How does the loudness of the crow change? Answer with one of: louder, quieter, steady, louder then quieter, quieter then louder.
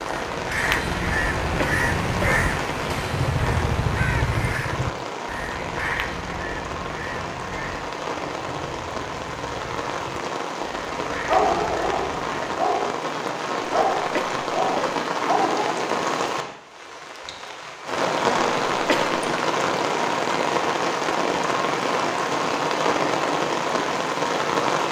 quieter.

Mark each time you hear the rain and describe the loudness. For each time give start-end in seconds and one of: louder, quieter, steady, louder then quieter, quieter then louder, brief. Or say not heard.
0.0-24.8 louder.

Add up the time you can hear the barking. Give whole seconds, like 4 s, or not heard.
4 s.